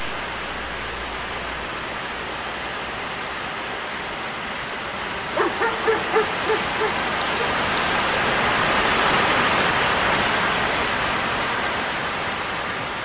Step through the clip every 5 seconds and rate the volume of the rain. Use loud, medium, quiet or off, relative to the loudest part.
medium, loud, loud.